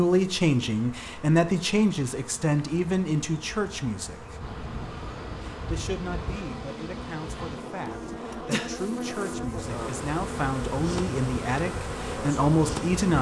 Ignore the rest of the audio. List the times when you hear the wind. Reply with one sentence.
The wind can be heard from 4.4 to 13.1 s.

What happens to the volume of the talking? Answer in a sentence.
The loudness of the talking goes down, then up.